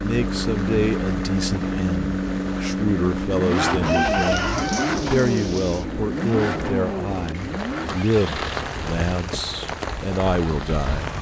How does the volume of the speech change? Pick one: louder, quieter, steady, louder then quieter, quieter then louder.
steady.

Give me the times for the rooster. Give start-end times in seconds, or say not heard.
3.5-5.0.